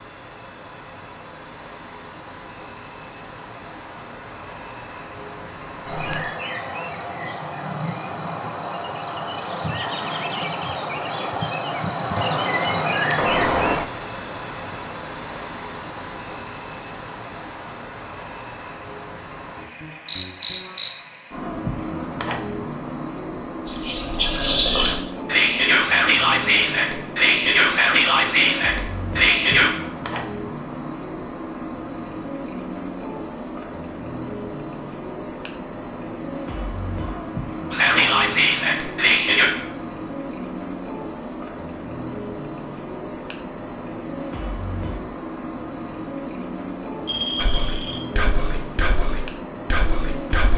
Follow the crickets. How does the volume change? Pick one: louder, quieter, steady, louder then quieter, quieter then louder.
louder then quieter.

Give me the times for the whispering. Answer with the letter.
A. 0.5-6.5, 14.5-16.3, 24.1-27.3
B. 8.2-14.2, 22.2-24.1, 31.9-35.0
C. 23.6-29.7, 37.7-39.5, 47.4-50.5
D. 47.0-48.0
C.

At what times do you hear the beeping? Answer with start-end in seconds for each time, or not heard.
47.0-48.0.